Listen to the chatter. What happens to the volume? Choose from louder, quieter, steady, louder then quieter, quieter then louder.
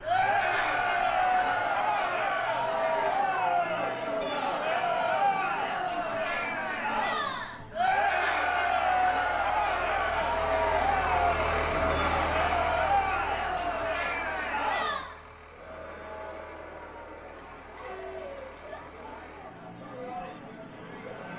quieter.